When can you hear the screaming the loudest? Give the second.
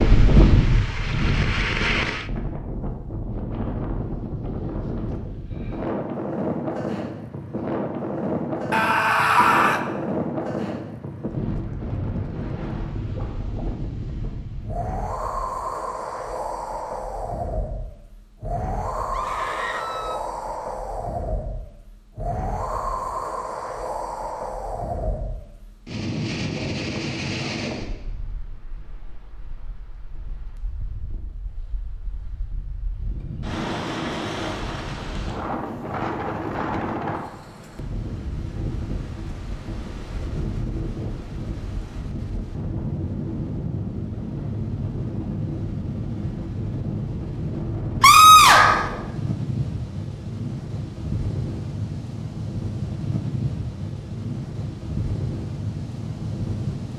48 s.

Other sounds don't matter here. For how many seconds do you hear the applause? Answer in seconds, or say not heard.
2 s.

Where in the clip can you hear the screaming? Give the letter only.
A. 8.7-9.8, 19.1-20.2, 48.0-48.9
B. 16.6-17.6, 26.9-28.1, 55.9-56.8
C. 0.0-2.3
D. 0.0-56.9
A.